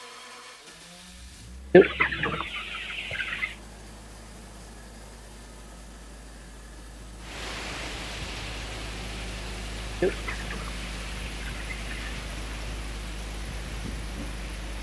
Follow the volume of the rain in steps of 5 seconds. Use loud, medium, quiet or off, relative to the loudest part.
off, loud, loud.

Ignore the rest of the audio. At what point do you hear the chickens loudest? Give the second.
2 s.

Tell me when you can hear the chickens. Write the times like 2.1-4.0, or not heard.
1.7-3.5, 10.0-12.2.